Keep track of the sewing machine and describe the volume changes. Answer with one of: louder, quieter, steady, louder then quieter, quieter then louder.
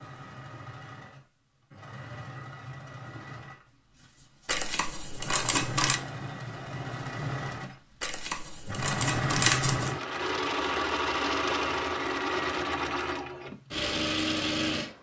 louder.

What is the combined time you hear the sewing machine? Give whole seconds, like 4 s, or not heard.
15 s.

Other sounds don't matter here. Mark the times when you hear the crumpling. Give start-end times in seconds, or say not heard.
4.5-6.0, 8.0-9.9.